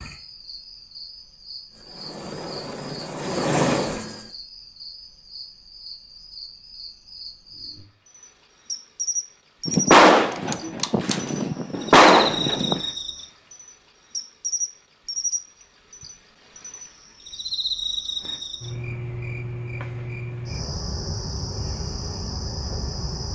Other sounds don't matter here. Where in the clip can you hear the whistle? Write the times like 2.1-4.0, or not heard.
not heard.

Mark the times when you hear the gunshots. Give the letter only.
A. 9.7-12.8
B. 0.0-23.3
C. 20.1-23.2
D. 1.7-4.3
A.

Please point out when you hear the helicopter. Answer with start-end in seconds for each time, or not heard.
1.7-4.3.